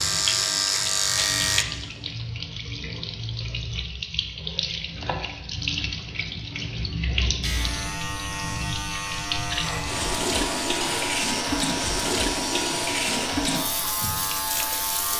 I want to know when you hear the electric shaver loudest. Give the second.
1 s.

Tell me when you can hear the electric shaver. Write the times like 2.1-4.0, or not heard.
0.0-1.6, 7.4-15.1.